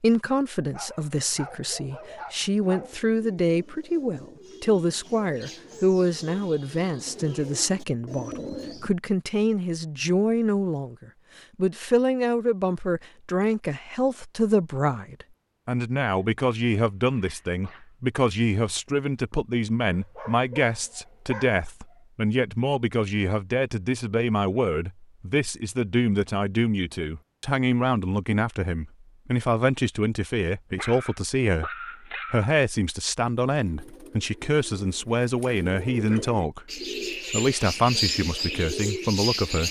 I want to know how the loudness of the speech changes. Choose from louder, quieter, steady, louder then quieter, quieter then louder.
steady.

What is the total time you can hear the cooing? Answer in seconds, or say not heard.
12 s.